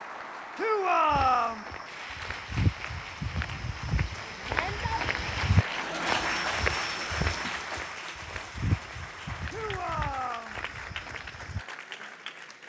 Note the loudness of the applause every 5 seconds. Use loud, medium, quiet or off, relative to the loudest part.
medium, loud, medium.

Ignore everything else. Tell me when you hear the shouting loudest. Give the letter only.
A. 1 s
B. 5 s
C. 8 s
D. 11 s
A.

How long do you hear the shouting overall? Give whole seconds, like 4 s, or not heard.
3 s.